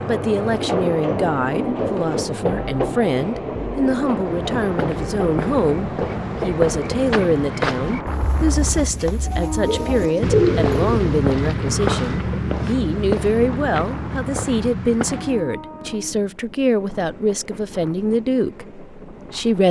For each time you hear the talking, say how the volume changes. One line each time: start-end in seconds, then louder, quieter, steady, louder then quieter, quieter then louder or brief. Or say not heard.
0.0-19.6 steady.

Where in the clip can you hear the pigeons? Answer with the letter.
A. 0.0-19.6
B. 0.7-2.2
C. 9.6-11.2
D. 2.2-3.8
C.